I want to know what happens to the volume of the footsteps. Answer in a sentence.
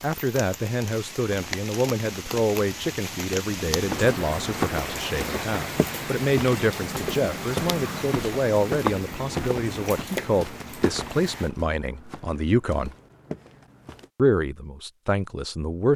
The volume of the footsteps goes down.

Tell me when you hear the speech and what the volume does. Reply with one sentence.
You can hear the speech from 0.0 to 12.9 s, at a steady volume; and briefly from 14.2 to 15.9 s.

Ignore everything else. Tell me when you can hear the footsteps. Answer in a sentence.
The footsteps can be heard from 3.7 to 14.1 s.